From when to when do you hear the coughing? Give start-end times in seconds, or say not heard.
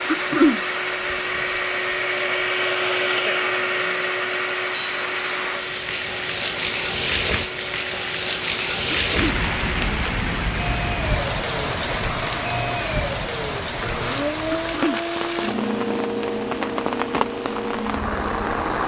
0.1-0.6, 8.9-9.3, 14.6-15.0.